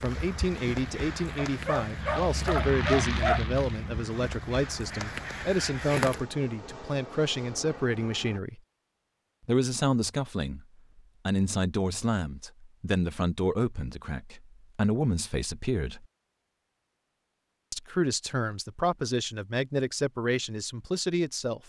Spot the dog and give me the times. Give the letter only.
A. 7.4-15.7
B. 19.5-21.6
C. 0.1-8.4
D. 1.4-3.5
D.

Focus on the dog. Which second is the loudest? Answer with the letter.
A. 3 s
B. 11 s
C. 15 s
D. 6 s
A.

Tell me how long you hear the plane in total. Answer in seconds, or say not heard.
8 s.